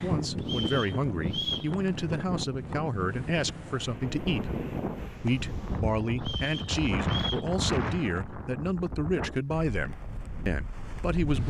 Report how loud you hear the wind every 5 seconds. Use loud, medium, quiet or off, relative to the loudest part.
loud, loud, medium.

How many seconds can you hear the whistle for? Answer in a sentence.
You can hear the whistle for 3 seconds altogether.